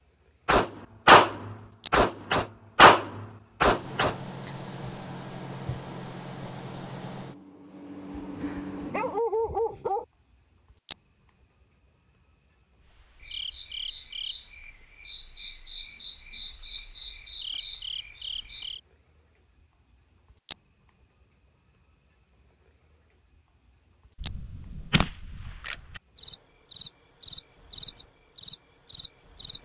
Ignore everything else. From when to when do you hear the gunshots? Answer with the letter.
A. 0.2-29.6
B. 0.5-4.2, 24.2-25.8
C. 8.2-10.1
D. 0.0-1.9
B.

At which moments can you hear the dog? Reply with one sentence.
You can hear the dog from 8.2 to 10.1 s.